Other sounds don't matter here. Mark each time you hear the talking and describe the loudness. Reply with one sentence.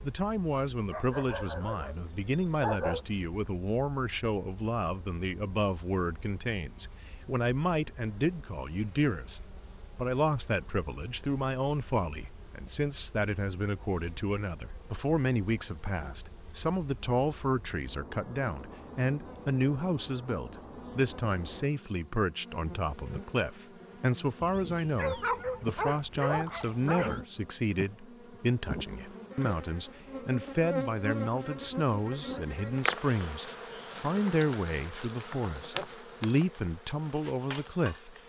The talking can be heard from 0.0 to 38.1 s, at a steady volume.